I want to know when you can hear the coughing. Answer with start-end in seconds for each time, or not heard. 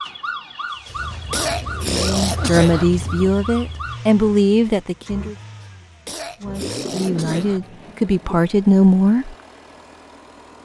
0.8-2.9, 5.6-7.6.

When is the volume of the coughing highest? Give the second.
2 s.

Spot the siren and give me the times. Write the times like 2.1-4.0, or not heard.
0.0-4.0.